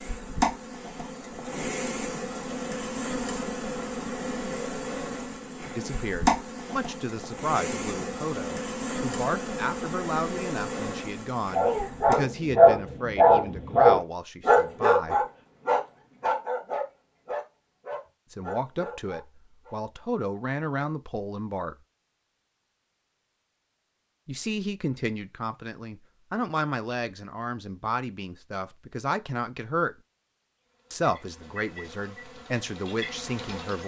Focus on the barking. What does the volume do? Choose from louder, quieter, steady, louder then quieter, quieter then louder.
quieter.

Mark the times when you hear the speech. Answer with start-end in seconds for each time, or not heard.
5.8-15.2, 18.3-21.8, 24.2-29.9, 30.9-33.8.